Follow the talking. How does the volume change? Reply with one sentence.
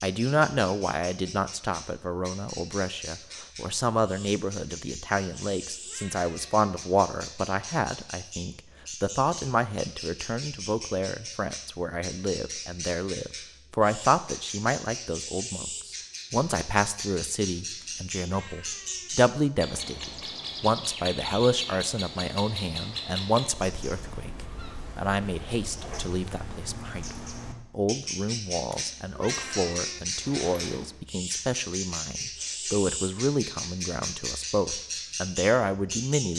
The volume of the talking stays about the same.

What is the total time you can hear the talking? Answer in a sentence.
The talking can be heard for 36 seconds in total.